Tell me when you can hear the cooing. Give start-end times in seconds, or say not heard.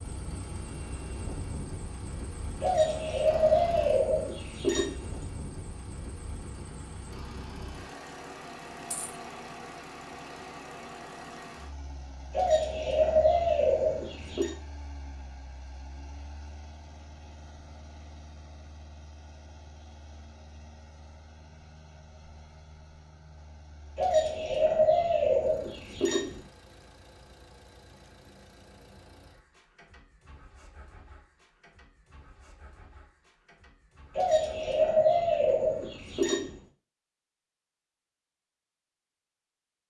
2.6-5.2, 12.3-14.6, 23.9-26.4, 34.1-36.5.